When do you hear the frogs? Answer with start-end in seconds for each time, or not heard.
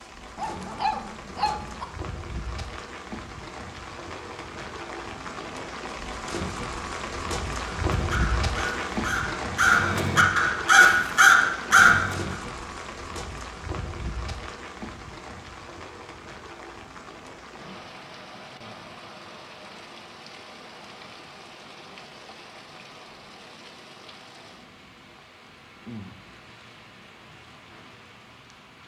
not heard.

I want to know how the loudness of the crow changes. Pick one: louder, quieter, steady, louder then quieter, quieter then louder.
louder.